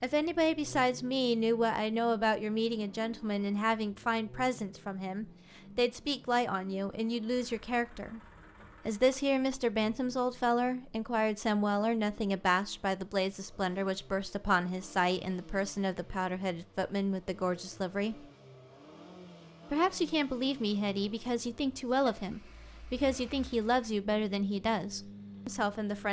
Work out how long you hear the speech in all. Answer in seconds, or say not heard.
24 s.